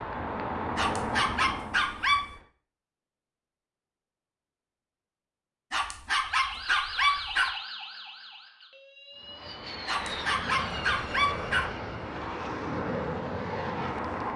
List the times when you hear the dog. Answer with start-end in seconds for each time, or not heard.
0.8-2.2, 5.7-7.5, 9.8-11.7.